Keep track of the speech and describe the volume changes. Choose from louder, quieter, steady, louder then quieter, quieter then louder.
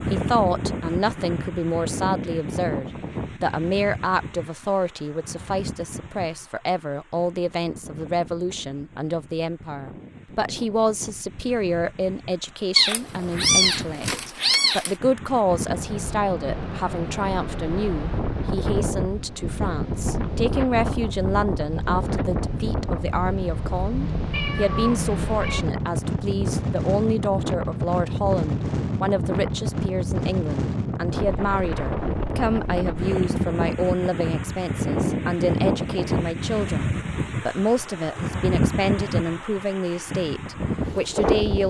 steady.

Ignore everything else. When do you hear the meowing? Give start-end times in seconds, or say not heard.
12.8-14.9, 24.3-25.6.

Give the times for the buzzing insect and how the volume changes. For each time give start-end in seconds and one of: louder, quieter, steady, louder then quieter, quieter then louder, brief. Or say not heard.
not heard.